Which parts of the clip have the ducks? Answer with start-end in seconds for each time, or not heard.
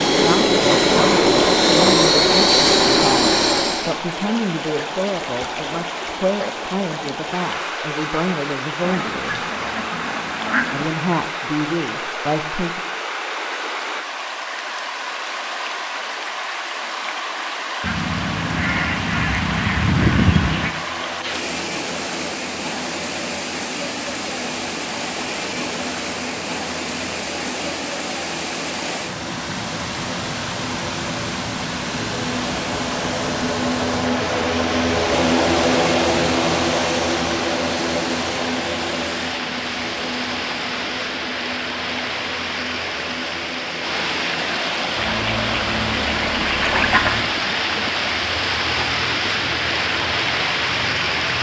8.8-10.8, 17.8-20.7, 45.0-47.3.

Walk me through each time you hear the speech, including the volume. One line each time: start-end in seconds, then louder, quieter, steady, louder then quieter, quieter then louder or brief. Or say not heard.
0.1-9.4 steady
10.7-12.8 brief.